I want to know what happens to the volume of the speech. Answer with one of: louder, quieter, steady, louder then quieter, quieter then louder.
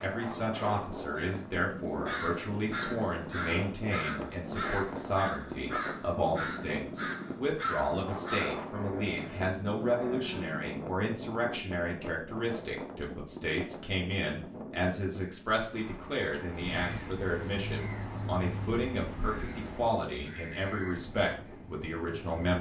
steady.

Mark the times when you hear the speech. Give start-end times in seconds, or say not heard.
0.0-22.5.